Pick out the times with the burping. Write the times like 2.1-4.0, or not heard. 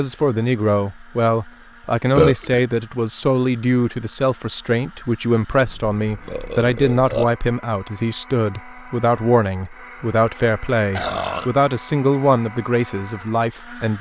2.1-2.6, 5.7-7.2, 10.9-11.5.